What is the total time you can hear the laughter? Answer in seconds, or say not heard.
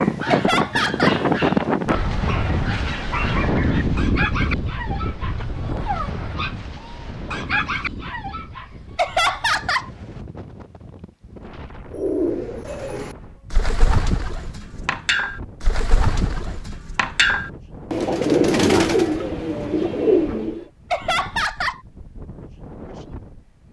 3 s.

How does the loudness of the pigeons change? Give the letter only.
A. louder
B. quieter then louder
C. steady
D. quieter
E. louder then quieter
A.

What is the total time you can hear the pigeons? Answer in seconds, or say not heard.
9 s.